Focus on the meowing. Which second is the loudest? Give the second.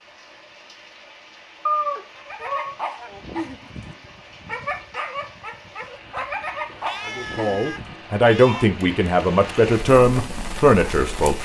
2 s.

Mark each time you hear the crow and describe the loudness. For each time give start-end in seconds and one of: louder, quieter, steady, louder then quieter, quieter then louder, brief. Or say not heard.
not heard.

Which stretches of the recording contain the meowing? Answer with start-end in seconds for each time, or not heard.
1.6-2.8, 6.7-8.7.